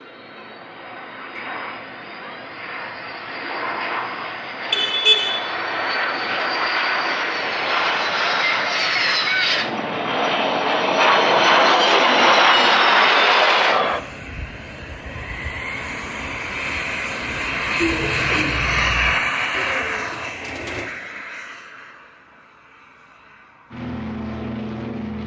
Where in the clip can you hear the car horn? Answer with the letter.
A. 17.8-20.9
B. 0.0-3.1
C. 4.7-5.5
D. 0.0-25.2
C.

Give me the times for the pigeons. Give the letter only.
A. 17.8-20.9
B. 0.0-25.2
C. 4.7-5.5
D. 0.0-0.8
A.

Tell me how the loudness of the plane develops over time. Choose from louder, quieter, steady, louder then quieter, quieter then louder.
louder then quieter.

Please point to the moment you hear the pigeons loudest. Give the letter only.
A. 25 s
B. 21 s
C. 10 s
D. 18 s
D.